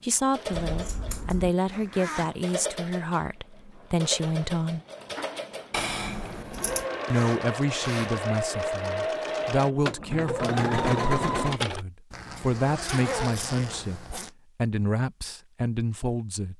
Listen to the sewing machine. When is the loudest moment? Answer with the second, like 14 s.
11 s.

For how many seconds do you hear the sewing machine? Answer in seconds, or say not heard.
12 s.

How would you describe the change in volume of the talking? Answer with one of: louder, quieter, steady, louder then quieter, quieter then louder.
steady.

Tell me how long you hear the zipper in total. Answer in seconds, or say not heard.
4 s.